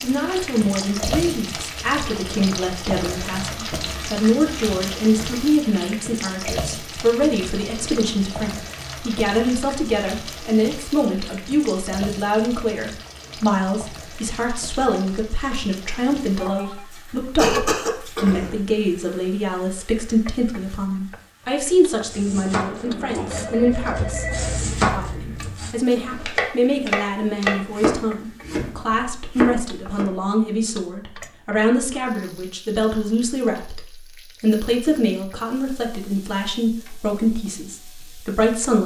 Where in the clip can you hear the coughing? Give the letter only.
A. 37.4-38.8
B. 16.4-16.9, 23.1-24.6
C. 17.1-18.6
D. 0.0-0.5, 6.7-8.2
C.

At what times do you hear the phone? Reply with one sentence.
The phone can be heard from 16.4 to 16.9 s and from 23.1 to 24.6 s.